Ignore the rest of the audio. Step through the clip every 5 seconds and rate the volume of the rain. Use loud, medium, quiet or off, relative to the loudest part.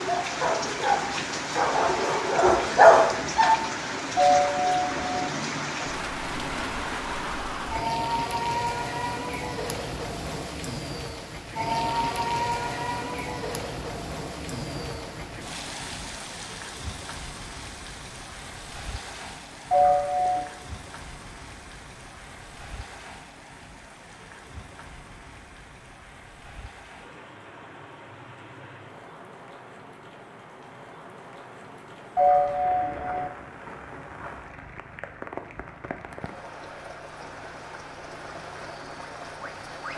loud, loud, loud, medium, quiet, quiet, quiet, medium.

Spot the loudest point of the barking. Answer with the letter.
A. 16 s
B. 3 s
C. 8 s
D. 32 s
B.